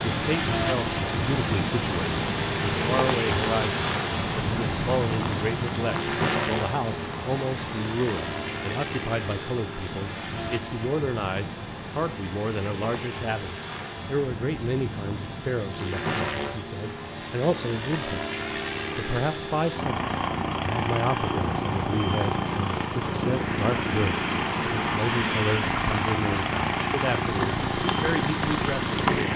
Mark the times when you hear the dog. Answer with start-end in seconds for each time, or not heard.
not heard.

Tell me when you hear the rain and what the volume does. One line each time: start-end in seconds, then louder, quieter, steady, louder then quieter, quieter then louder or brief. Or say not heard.
0.0-29.3 quieter then louder.